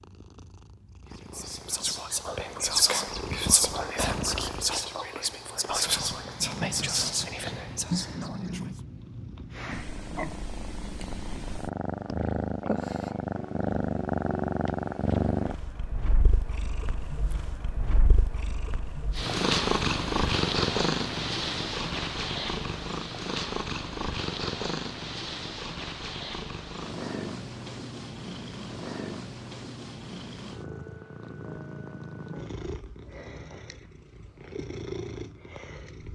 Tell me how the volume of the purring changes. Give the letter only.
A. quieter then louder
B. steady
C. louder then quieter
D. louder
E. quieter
C.